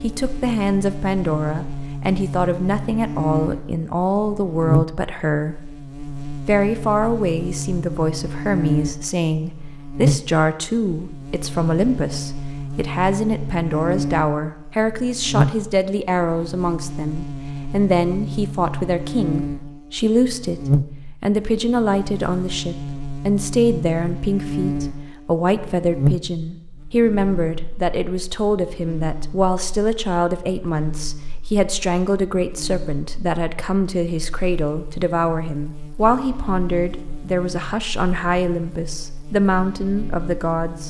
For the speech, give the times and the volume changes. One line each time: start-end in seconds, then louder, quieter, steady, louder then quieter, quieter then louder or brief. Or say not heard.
0.0-5.7 steady
6.2-40.8 steady.